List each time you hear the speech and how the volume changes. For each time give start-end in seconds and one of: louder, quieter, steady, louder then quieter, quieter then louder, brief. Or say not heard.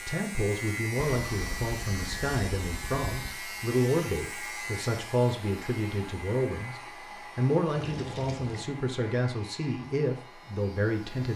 0.1-11.3 steady.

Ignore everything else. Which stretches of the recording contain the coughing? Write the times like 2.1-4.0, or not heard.
not heard.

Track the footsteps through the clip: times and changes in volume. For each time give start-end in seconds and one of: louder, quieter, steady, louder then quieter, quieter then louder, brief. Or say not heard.
not heard.